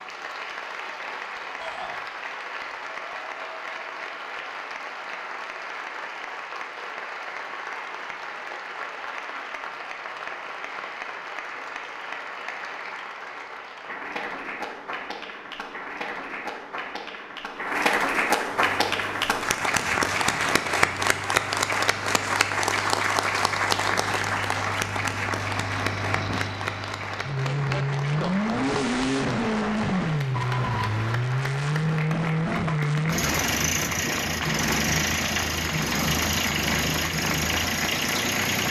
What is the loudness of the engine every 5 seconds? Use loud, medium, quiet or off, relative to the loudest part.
off, off, off, quiet, quiet, loud, loud, loud.